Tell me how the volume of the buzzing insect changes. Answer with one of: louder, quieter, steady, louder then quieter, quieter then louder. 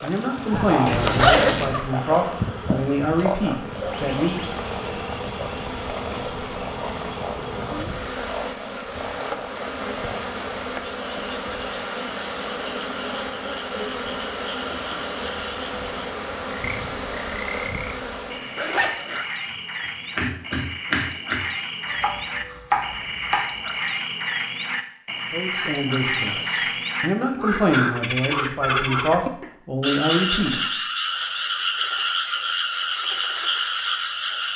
steady.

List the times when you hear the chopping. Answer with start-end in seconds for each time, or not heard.
18.4-23.5.